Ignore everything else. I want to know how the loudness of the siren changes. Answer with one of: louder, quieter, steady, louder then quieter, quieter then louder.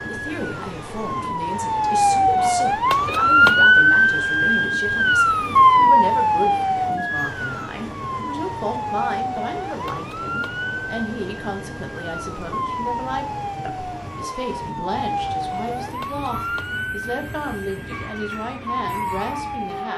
quieter.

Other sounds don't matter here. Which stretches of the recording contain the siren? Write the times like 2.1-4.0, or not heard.
0.0-19.9.